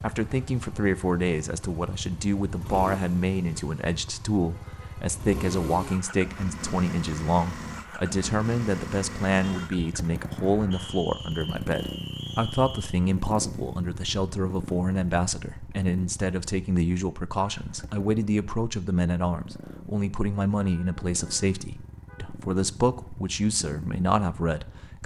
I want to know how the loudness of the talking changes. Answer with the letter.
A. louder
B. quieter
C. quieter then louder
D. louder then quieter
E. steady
E.